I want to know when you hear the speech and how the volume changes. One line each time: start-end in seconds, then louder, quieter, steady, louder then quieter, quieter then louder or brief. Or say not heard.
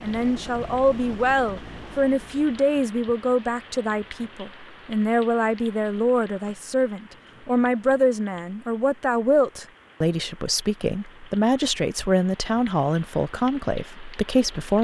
0.0-14.8 steady.